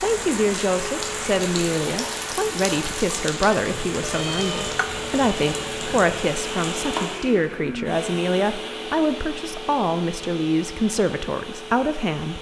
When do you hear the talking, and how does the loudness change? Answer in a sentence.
You can hear the talking from 0.0 to 12.3 s, at a steady volume.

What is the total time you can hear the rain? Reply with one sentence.
The rain can be heard for 7 seconds in total.